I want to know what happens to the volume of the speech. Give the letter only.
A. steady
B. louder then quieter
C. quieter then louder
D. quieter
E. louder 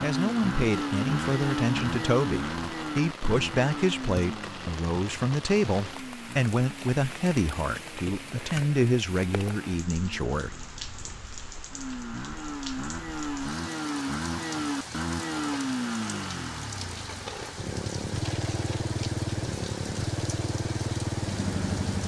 A.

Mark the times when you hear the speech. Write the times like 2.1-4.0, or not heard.
0.0-10.5.